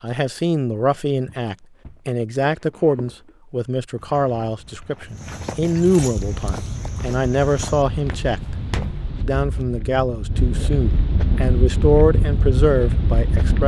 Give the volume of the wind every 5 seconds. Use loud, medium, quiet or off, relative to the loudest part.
off, medium, loud.